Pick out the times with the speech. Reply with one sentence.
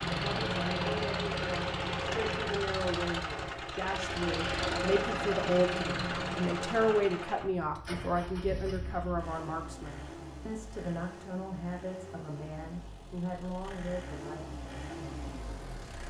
You can hear the speech from 0.1 to 14.4 s.